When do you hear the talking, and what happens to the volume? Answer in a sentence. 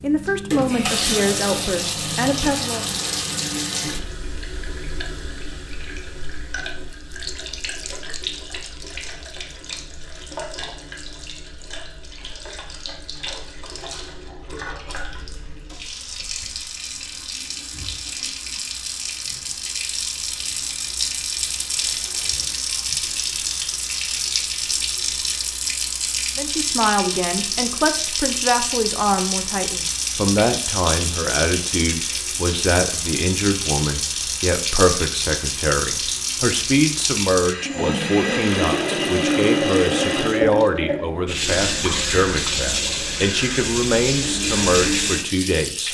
You can hear the talking briefly from 0.0 to 2.9 s; and from 26.4 to 45.9 s, at a steady volume.